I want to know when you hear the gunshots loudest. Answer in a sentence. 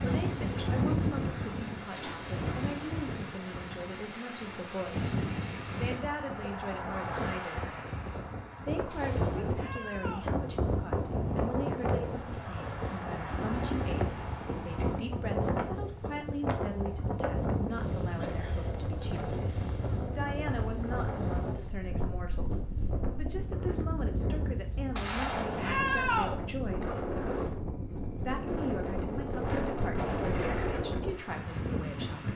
The loudest moment of the gunshots is at 26 seconds.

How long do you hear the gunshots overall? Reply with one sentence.
The gunshots can be heard for 3 seconds in total.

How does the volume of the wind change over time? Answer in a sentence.
The loudness of the wind stays about the same.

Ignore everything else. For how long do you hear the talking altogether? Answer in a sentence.
You can hear the talking for 29 seconds altogether.